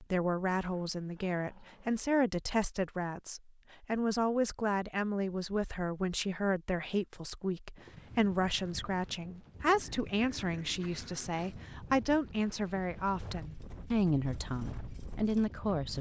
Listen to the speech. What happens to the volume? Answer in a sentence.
The loudness of the speech stays about the same.